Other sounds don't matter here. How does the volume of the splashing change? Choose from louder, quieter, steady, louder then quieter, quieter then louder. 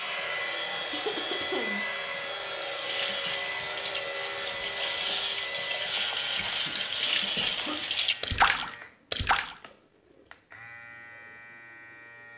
louder.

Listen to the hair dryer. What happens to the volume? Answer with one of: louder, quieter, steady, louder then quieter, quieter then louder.
quieter.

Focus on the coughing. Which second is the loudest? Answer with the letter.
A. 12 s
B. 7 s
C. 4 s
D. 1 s
D.